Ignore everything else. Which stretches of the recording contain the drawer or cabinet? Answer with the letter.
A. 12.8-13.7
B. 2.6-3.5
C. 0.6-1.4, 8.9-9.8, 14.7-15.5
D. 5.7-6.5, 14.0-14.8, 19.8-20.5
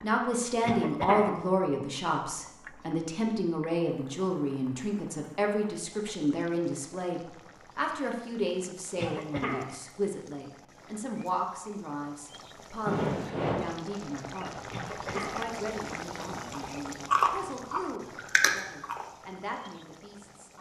A.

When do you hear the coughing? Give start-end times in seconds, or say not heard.
0.6-1.4, 8.9-9.8, 14.7-15.5.